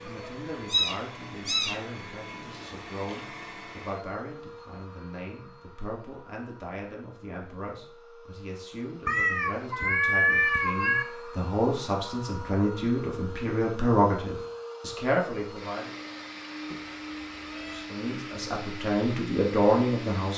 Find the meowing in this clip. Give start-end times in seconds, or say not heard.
0.1-1.8, 9.1-11.1, 16.7-17.9.